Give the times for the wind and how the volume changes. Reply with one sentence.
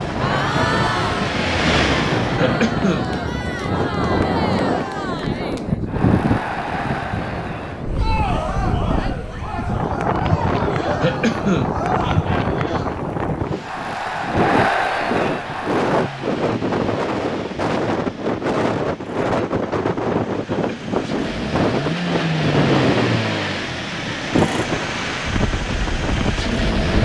The wind can be heard from 0.0 to 27.0 s, at a steady volume.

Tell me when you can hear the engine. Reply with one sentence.
You can hear the engine from 0.0 to 2.4 s and from 15.4 to 27.0 s.